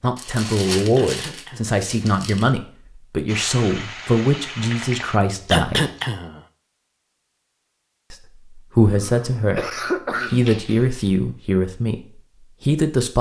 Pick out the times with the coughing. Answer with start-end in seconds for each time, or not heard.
0.9-1.8, 5.5-6.4, 8.8-10.4.